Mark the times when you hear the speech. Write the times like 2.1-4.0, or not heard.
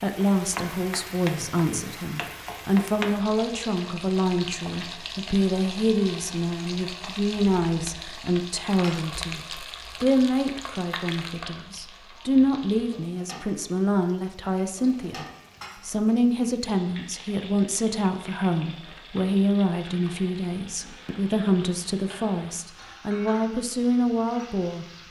0.0-15.2, 15.8-25.0.